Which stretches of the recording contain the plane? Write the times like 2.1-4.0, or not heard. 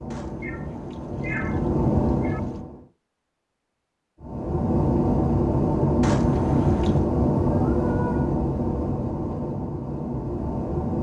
0.0-2.9, 4.2-10.9.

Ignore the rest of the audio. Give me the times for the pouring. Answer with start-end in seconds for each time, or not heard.
0.1-2.6, 6.0-7.1.